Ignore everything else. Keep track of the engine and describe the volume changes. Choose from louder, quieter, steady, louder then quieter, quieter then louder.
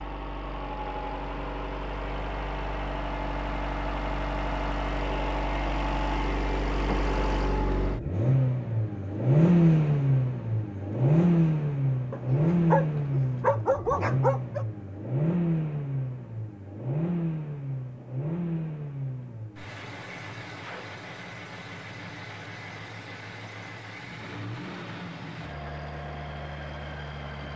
louder then quieter.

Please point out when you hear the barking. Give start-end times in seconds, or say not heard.
12.1-14.7.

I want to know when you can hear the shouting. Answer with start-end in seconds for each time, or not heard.
not heard.